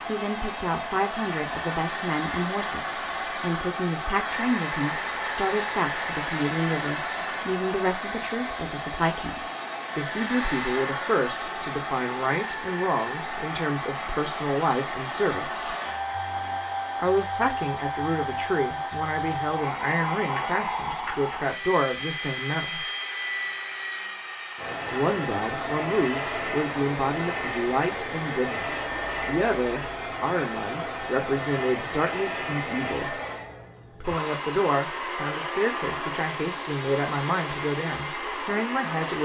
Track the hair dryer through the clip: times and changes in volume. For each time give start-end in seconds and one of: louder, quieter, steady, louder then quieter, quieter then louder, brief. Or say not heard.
0.0-39.2 steady.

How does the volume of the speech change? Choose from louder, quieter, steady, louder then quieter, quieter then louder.
steady.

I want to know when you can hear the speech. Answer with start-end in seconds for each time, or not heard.
0.1-15.7, 16.9-22.9, 24.9-33.1, 34.0-39.2.